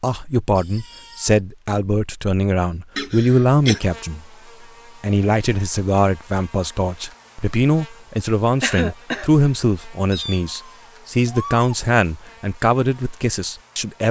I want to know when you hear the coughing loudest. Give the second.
9 s.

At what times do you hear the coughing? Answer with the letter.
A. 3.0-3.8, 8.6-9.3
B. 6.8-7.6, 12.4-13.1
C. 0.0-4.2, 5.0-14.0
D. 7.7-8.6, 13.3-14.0
A.